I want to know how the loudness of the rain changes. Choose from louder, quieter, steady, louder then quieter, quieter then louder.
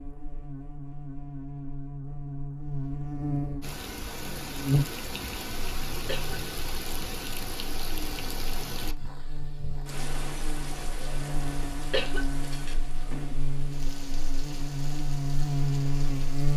quieter.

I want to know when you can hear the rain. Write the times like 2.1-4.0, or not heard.
3.6-16.5.